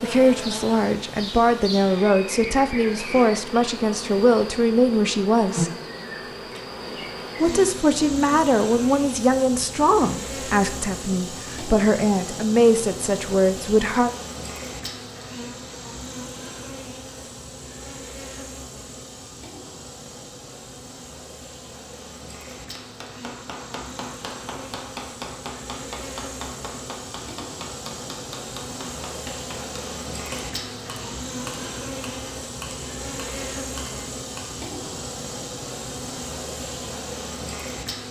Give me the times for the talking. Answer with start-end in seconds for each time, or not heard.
0.0-5.7, 7.4-14.1.